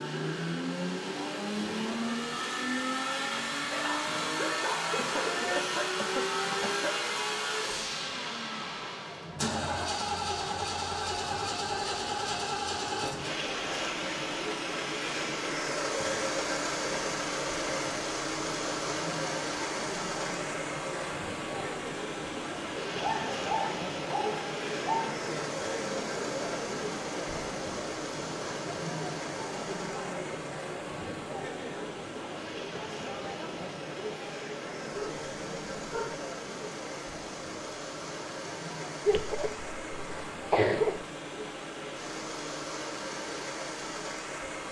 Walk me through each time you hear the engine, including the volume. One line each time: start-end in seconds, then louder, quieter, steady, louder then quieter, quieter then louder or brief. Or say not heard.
0.0-44.6 quieter.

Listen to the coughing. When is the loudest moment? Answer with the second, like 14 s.
41 s.